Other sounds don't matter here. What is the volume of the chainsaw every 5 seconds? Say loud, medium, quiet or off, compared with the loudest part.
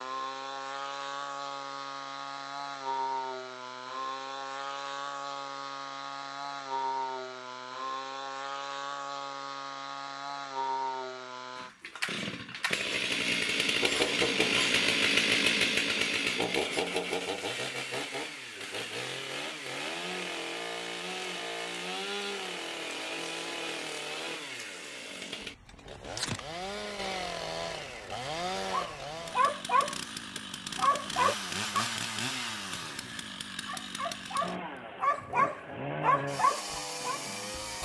medium, medium, loud, loud, medium, medium, medium, medium.